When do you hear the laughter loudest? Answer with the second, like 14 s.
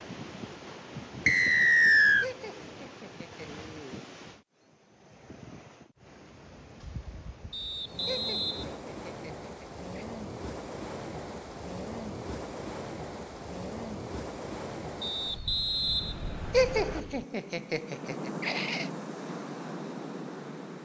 17 s.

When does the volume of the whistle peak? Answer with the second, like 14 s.
2 s.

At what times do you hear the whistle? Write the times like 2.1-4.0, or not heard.
1.2-2.3, 7.5-8.8, 15.0-17.0.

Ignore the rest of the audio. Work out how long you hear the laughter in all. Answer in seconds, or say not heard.
6 s.